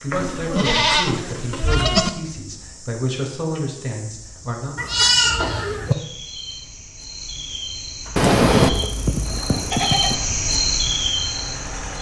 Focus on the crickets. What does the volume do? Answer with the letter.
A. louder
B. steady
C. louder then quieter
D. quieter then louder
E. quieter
A.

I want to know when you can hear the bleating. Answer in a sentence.
The bleating can be heard from 0.1 to 2.1 s, from 4.8 to 6.0 s and from 8.2 to 10.2 s.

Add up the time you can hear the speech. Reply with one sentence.
You can hear the speech for 5 seconds altogether.